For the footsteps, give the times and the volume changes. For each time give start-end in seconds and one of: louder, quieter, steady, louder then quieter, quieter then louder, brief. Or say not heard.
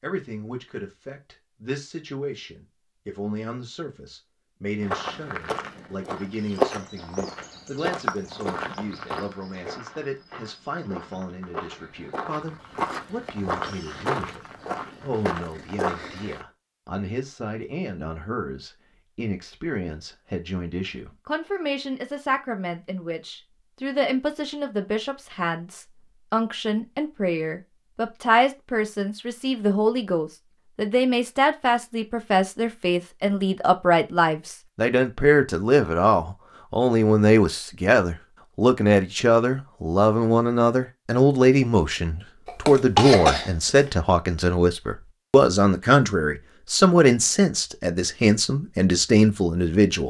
4.8-16.4 quieter then louder.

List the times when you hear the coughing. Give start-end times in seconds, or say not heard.
42.5-43.9.